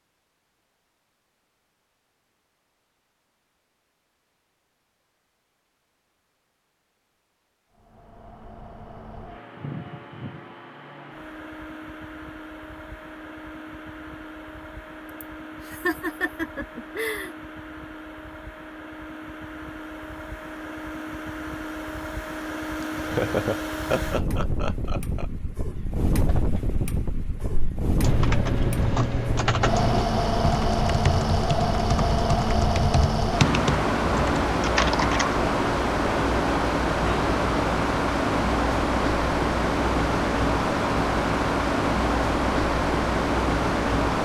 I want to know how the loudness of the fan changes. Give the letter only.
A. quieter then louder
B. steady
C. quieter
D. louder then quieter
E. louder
E.